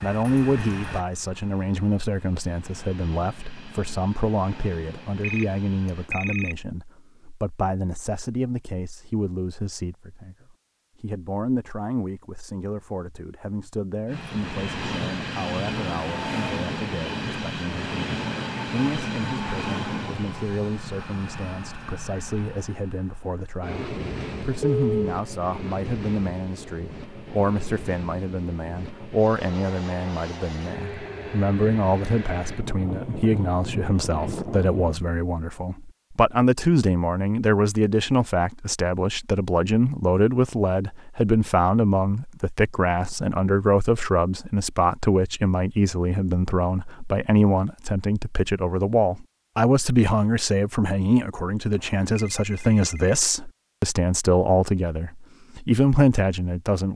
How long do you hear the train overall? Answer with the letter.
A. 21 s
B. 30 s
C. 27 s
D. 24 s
C.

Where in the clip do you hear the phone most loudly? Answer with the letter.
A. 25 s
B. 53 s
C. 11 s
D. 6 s
A.